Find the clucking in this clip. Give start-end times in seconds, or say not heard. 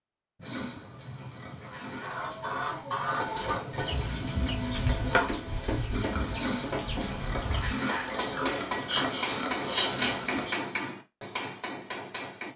1.6-10.6.